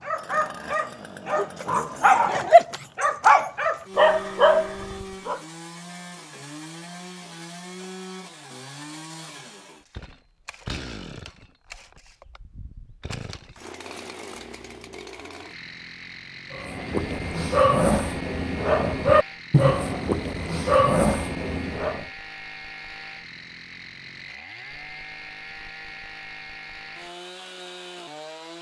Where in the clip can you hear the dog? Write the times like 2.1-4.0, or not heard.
0.1-5.4, 16.5-22.1.